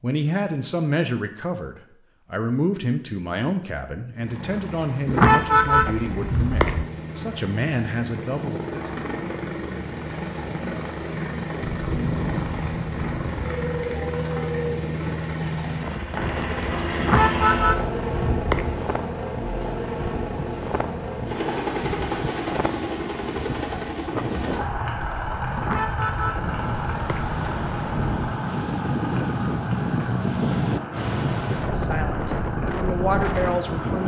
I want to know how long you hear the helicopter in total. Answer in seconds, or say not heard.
30 s.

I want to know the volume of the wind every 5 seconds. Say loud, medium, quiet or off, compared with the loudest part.
off, off, medium, medium, medium, loud, loud.